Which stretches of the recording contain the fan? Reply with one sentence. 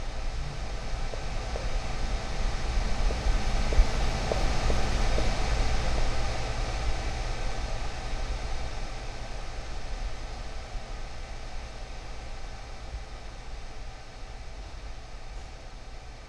You can hear the fan from 0.0 to 16.2 s.